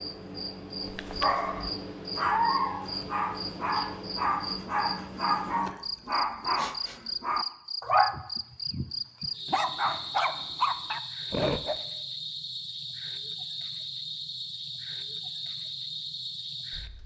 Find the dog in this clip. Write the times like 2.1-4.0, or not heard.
0.8-11.8.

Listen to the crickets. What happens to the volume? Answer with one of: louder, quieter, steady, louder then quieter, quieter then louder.
steady.